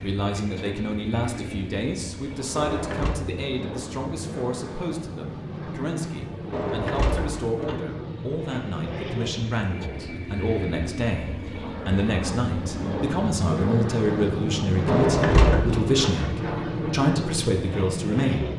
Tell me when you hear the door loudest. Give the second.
15 s.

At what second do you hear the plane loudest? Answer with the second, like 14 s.
15 s.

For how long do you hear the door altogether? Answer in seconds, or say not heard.
3 s.